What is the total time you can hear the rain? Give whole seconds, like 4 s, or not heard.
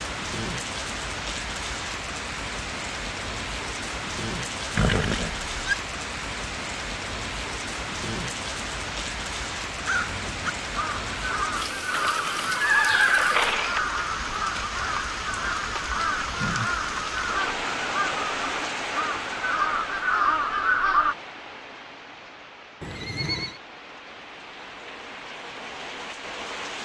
27 s.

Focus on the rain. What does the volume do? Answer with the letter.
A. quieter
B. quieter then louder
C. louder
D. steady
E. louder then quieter
A.